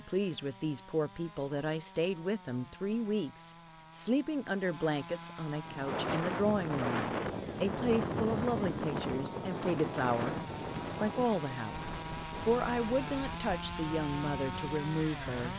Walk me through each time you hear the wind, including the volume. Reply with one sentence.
The wind can be heard from 5.7 to 15.5 s, getting quieter.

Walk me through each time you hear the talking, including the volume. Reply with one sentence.
The talking can be heard from 0.0 to 15.5 s, at a steady volume.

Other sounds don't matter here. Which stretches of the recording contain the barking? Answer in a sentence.
The barking can't be heard in this clip.